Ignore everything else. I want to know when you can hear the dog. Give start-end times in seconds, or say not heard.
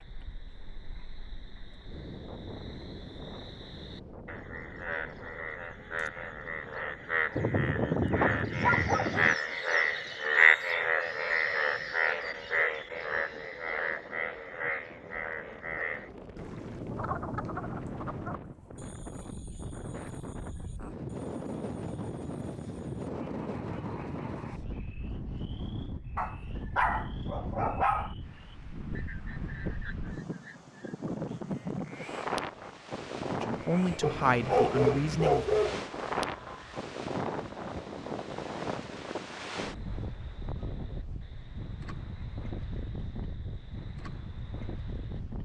7.3-9.3, 26.1-28.1, 34.0-35.8.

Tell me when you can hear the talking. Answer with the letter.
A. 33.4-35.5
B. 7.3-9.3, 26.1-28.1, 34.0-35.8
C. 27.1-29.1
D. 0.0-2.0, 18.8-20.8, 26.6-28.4
A.